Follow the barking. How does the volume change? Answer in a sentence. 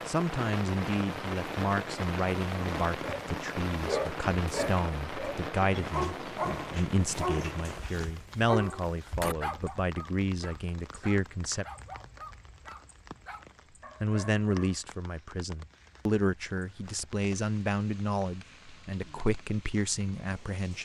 The loudness of the barking goes down.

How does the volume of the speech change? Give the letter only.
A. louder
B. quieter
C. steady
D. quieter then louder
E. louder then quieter
C.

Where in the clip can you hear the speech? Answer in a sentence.
You can hear the speech from 0.1 to 11.7 s and from 14.0 to 20.8 s.